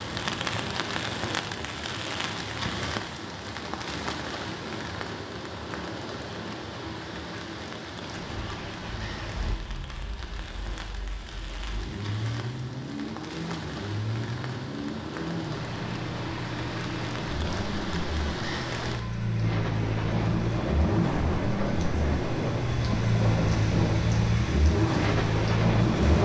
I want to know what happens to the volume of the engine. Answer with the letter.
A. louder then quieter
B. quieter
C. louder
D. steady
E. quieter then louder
C.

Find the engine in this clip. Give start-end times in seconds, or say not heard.
8.1-26.2.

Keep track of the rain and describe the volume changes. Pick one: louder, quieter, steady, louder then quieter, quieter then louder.
quieter then louder.